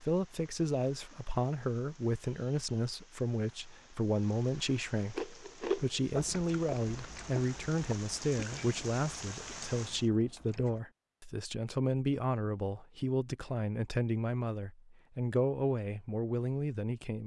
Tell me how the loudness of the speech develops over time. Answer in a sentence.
The volume of the speech stays about the same.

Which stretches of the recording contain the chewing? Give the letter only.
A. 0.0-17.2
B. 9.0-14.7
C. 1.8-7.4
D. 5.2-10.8
D.